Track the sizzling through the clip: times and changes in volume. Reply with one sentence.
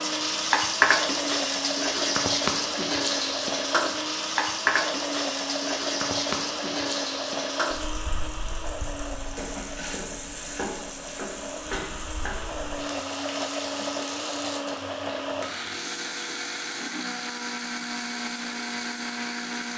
You can hear the sizzling from 0.0 to 19.7 s, getting quieter.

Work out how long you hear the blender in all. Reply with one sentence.
The blender can be heard for 20 seconds in total.